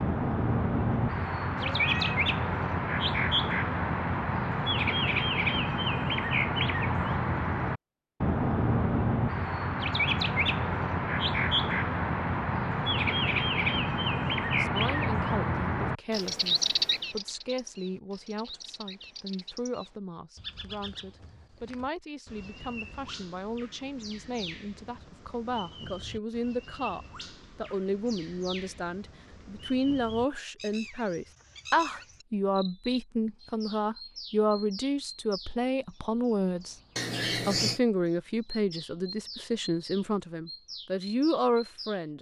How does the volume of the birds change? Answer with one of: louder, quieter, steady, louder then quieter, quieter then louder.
quieter.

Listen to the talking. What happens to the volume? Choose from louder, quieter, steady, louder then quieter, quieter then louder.
louder.